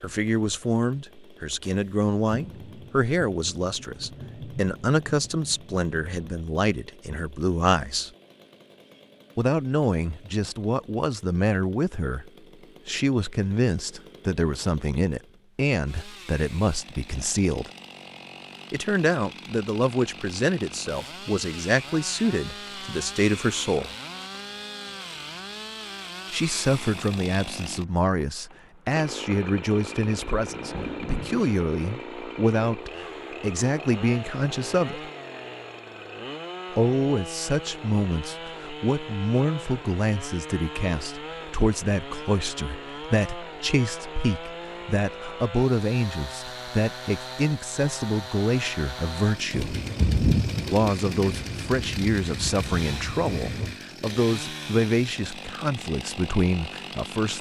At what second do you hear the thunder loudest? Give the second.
50 s.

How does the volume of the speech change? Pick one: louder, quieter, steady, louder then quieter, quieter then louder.
steady.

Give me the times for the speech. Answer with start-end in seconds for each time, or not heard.
0.0-8.1, 9.3-17.7, 18.7-23.9, 26.3-35.1, 36.8-49.8, 50.7-57.3.